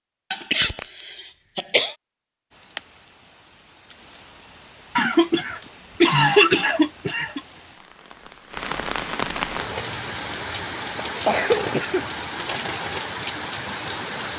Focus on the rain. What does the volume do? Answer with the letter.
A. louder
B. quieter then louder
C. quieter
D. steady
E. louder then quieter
A.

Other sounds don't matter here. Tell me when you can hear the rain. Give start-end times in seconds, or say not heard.
2.5-14.3.